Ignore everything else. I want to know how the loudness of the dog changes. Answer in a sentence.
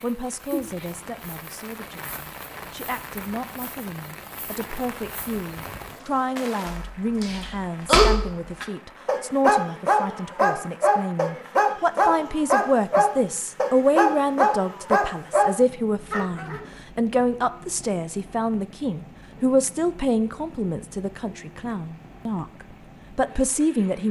The loudness of the dog stays about the same.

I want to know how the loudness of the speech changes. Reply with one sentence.
The loudness of the speech goes up.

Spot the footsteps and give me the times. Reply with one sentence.
The footsteps can't be heard in this clip.